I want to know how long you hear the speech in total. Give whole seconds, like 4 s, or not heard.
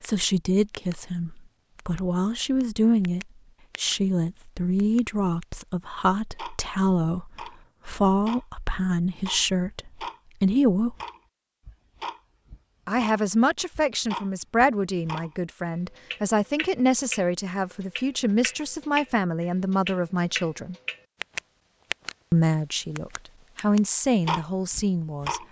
22 s.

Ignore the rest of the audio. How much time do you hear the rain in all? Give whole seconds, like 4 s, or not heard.
not heard.